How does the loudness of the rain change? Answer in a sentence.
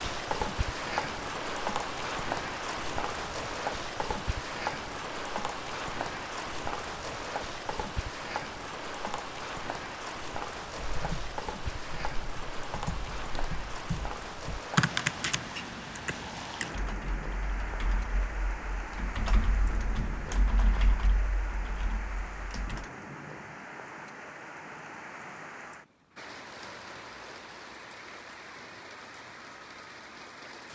The volume of the rain goes down.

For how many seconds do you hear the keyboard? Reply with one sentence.
You can hear the keyboard for 12 seconds altogether.